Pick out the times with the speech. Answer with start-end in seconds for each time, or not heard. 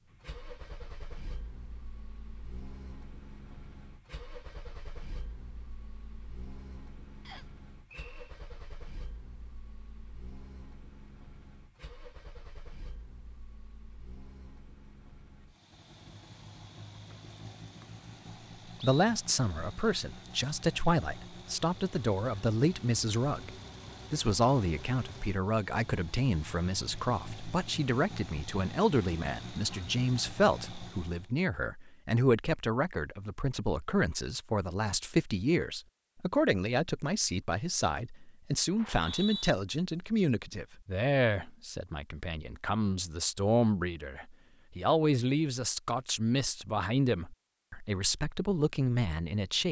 18.8-23.5, 24.1-49.6.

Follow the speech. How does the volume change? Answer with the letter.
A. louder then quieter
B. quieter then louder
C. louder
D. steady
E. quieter
D.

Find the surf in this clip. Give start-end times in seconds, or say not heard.
not heard.